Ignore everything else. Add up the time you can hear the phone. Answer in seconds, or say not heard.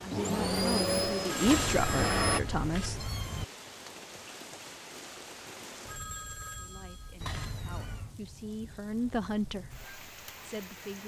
3 s.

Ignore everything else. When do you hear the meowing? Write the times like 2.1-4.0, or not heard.
1.4-3.5, 7.2-8.2.